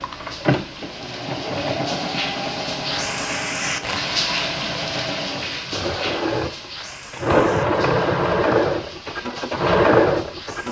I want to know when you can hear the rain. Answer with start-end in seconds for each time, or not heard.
0.0-10.6.